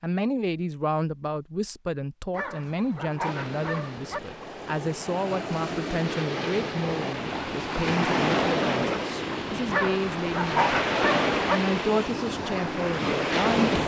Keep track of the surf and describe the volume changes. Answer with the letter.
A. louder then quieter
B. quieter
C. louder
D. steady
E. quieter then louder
C.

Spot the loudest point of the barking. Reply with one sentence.
The loudest moment of the barking is at 11 seconds.